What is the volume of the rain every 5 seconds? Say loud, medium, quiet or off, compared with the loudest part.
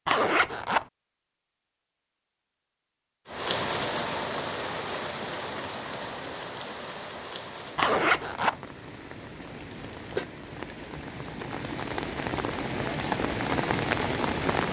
loud, medium, loud.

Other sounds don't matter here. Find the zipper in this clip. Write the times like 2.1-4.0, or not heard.
0.1-0.8, 7.8-8.6.